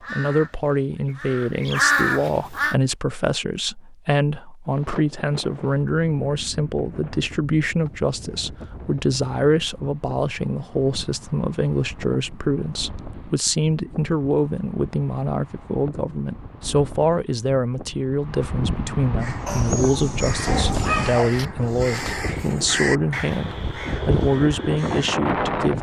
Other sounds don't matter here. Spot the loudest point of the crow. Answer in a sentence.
The volume of the crow peaks at 2 seconds.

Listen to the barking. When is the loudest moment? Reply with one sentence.
The loudest moment of the barking is at 21 seconds.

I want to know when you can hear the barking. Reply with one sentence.
The barking can be heard from 19.4 to 21.4 s.